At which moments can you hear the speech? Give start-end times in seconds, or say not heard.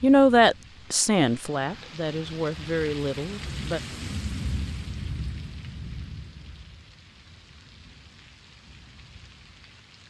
0.0-3.8.